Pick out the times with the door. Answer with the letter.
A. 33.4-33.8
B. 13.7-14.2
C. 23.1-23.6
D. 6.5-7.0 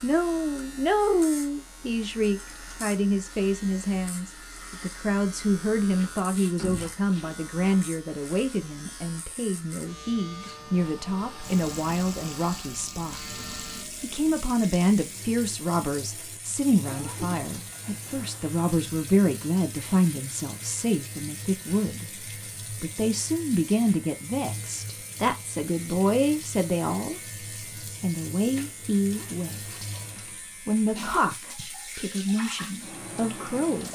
D.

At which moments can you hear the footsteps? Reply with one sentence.
You can't hear the footsteps here.